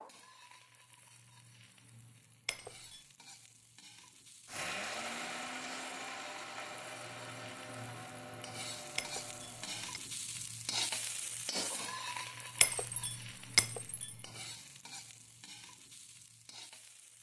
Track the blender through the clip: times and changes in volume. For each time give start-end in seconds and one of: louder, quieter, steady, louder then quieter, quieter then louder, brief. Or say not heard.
4.5-9.9 quieter.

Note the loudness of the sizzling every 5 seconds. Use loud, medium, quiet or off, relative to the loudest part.
quiet, medium, loud, quiet.